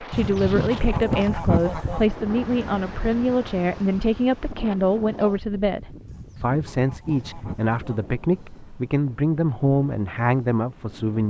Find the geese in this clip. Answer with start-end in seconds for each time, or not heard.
0.1-2.1, 6.0-8.1.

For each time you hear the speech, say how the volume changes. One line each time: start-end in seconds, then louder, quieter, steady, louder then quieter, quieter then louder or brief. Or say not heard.
0.0-11.2 steady.